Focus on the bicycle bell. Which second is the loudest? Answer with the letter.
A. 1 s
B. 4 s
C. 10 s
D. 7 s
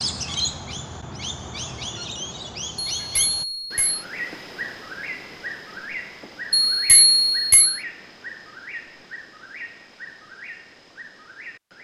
D.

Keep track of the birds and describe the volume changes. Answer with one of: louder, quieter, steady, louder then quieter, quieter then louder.
quieter.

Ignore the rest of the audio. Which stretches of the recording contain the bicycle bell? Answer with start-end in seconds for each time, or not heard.
3.0-4.0, 6.5-7.8.